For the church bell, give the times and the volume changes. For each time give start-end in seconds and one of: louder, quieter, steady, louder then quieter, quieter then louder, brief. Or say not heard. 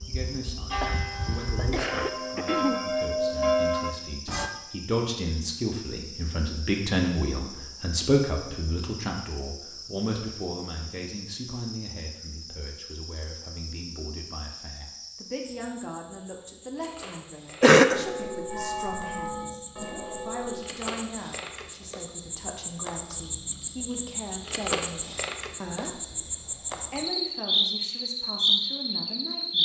0.0-4.5 louder
17.9-20.6 brief.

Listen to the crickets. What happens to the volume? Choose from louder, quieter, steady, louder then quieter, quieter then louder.
louder.